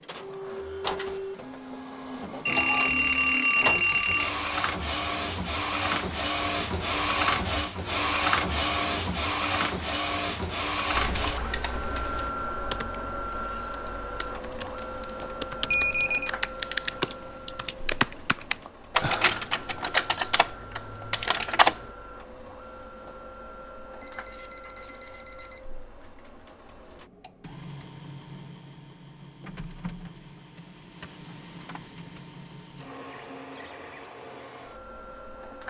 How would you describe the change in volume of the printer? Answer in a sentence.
The volume of the printer goes down.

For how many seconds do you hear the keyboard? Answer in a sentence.
The keyboard can be heard for 11 seconds in total.